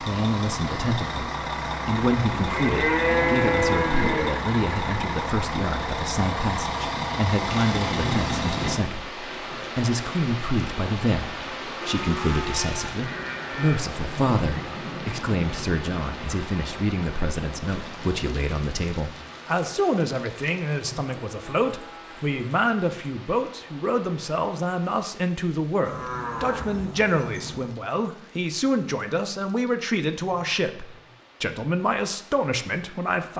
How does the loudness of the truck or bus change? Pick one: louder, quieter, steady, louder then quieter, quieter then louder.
steady.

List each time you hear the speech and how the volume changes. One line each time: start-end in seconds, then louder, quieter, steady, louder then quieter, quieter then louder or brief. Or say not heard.
0.0-33.3 steady.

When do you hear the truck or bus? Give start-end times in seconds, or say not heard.
0.0-8.8.